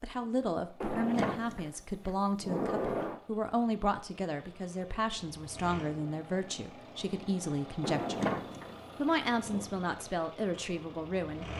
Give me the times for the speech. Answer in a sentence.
The speech can be heard from 0.0 to 8.2 s and from 8.9 to 11.5 s.